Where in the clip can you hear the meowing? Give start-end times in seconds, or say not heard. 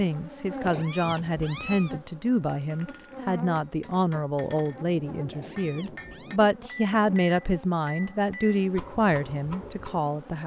0.6-1.9, 5.3-6.4.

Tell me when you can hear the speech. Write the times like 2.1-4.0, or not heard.
0.0-10.4.